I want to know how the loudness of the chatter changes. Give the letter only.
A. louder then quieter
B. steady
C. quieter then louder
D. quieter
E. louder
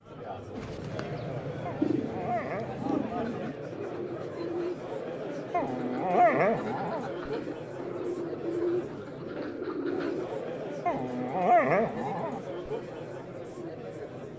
B.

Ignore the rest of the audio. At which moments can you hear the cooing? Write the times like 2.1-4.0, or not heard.
0.6-10.2.